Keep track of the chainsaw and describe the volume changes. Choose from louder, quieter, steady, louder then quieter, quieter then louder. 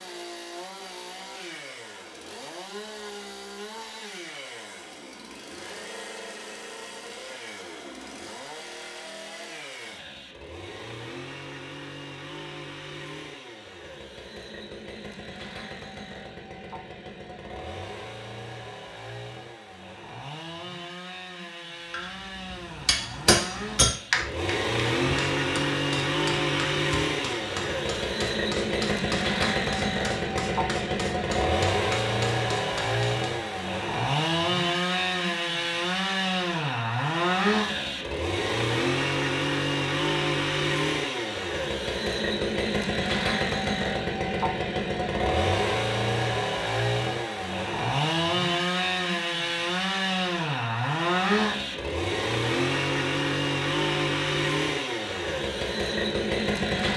louder.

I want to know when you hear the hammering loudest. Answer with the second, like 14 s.
24 s.